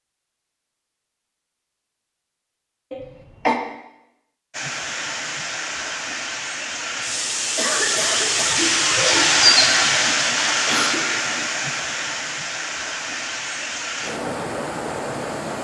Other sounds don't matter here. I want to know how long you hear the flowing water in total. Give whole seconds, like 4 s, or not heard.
11 s.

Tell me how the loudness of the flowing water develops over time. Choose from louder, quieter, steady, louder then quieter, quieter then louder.
louder then quieter.